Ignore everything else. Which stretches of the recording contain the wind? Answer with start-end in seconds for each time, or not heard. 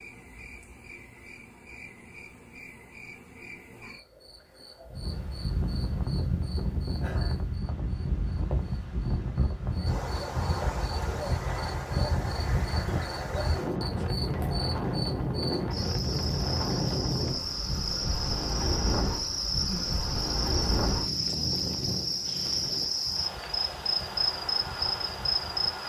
4.8-25.8.